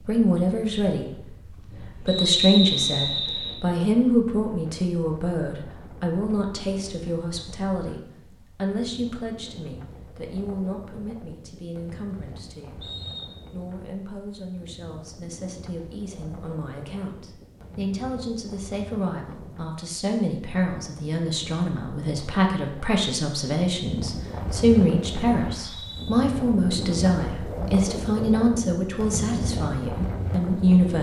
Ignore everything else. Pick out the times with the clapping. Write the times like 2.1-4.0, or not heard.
not heard.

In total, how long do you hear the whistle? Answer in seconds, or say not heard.
3 s.